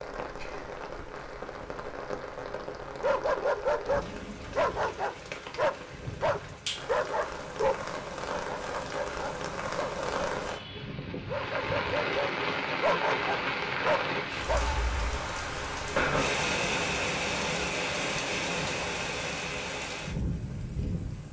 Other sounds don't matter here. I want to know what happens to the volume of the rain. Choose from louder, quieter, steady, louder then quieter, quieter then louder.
louder.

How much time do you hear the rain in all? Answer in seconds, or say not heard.
21 s.